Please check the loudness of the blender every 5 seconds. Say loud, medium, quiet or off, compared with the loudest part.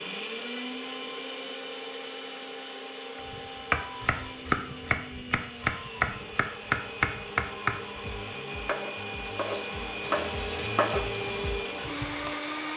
medium, medium, loud.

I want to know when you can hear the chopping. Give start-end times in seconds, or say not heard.
3.1-12.3.